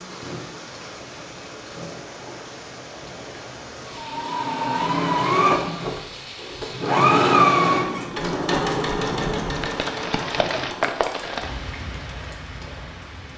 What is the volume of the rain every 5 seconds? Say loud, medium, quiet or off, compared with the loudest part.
medium, loud, loud.